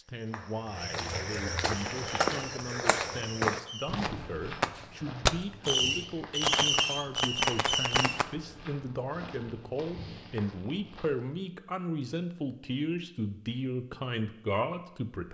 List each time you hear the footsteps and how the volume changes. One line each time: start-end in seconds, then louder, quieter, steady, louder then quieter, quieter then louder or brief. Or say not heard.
0.0-11.4 quieter.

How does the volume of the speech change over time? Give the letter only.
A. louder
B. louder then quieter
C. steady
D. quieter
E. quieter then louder
A.